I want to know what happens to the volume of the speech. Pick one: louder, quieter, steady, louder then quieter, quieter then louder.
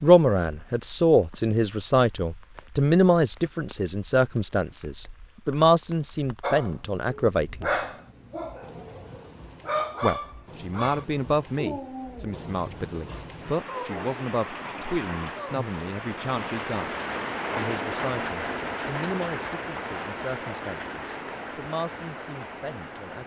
quieter.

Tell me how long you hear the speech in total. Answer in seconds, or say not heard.
20 s.